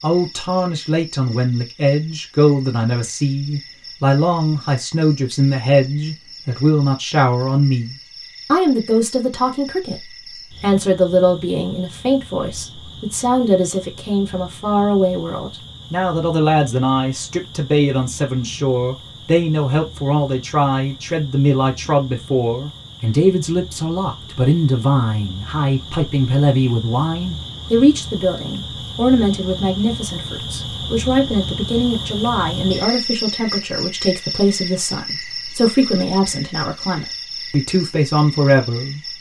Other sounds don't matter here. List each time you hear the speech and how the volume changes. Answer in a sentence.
The speech can be heard from 0.0 to 39.1 s, at a steady volume.